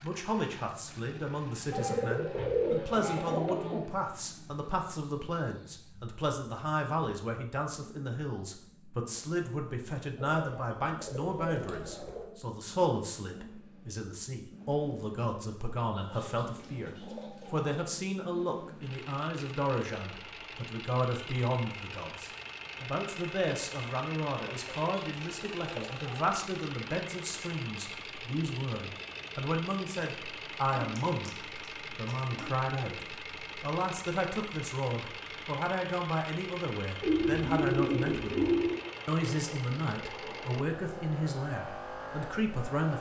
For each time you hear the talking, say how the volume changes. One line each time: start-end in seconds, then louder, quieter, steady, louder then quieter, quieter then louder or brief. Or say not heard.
0.0-42.9 steady.